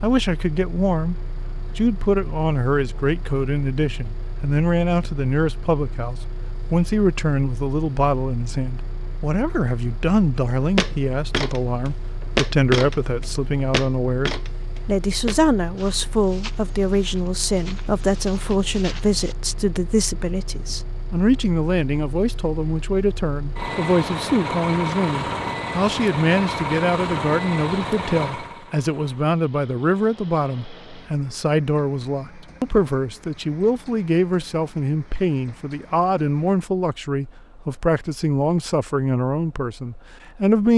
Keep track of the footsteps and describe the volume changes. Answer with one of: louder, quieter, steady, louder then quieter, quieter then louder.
quieter.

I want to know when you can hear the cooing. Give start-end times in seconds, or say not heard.
not heard.